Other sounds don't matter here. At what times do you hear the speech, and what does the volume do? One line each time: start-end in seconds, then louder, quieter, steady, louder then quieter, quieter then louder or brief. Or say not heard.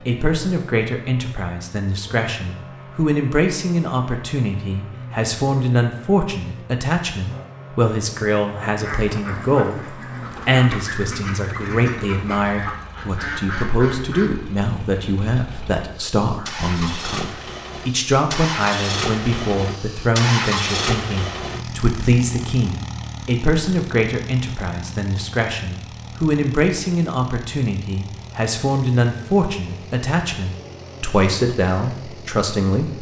0.1-32.9 steady.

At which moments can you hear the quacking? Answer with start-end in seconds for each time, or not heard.
8.8-14.3.